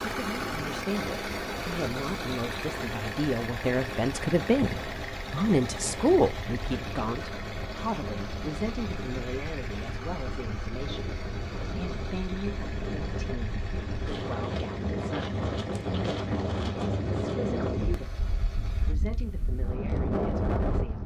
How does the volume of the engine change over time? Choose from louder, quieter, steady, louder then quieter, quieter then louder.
quieter.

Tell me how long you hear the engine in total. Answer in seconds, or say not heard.
19 s.